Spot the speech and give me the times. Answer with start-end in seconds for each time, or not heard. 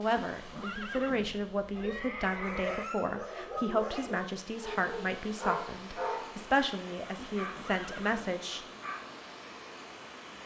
0.0-8.6.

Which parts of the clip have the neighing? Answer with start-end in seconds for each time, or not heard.
0.3-2.9, 7.3-8.3.